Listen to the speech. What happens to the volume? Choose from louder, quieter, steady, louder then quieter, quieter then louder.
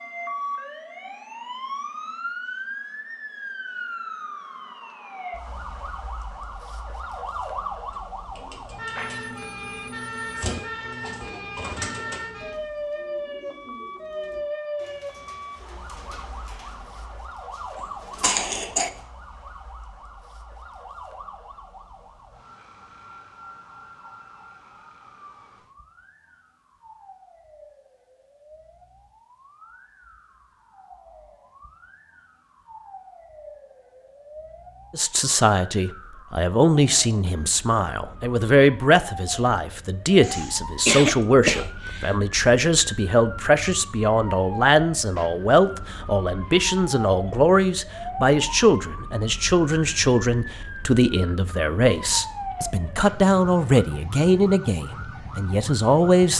steady.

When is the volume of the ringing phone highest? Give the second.
9 s.